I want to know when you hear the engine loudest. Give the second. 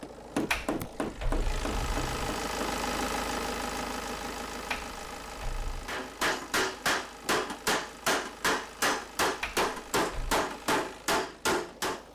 3 s.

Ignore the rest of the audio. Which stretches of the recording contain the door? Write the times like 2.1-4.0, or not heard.
0.5-2.4, 4.7-6.0, 9.4-10.3.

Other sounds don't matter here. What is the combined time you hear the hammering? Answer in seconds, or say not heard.
9 s.